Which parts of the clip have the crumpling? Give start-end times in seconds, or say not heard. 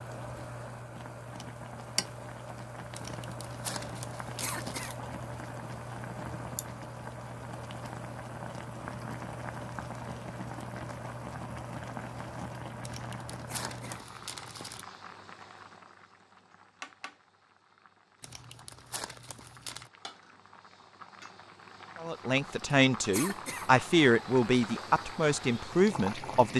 3.0-5.0, 12.8-14.8, 18.2-19.9.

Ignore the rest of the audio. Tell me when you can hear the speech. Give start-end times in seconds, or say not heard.
22.0-26.5.